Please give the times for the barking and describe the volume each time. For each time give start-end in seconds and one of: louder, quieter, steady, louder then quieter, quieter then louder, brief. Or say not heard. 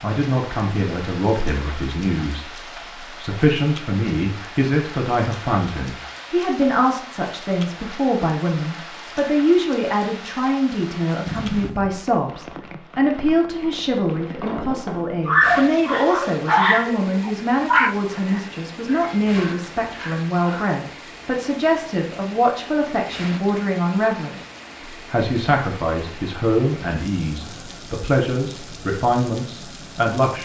15.2-20.7 quieter.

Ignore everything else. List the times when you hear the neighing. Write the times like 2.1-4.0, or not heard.
11.2-11.9.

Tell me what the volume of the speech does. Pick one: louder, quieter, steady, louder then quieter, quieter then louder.
steady.